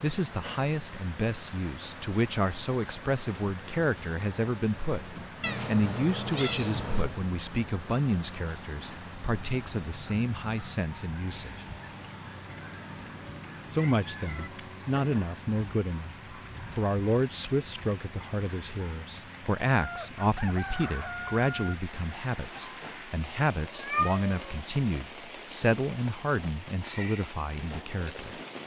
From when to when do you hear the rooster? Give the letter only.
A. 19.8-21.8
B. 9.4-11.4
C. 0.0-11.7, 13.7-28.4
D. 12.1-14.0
A.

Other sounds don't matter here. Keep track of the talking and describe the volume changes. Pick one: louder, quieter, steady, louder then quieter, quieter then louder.
steady.